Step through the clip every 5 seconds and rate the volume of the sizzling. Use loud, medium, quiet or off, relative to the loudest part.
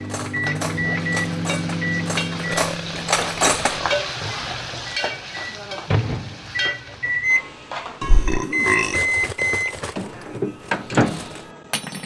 loud, loud, off.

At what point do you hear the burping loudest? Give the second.
9 s.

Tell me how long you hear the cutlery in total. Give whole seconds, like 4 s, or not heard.
7 s.